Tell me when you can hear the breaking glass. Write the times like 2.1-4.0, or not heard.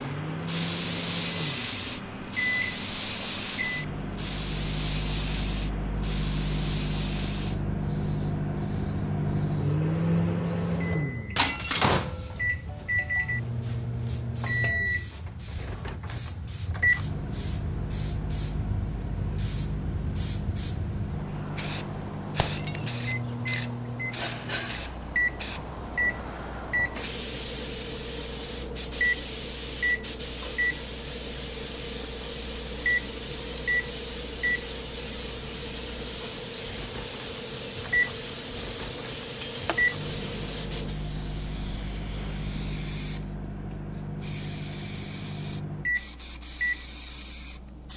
11.3-12.0, 22.4-23.0, 39.4-39.9.